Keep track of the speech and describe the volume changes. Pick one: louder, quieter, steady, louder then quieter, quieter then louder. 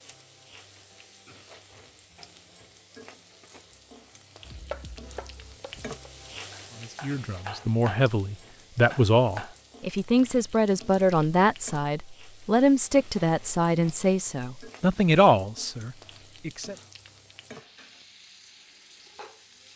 steady.